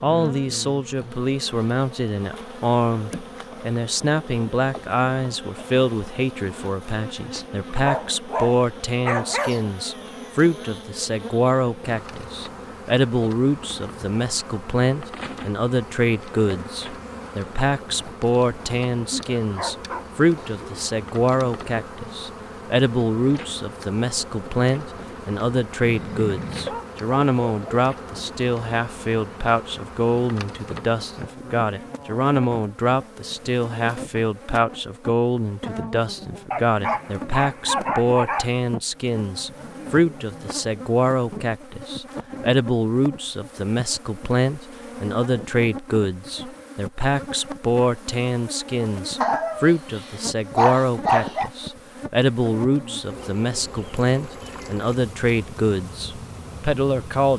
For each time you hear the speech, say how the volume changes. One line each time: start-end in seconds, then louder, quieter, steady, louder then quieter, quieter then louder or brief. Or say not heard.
0.0-57.3 steady.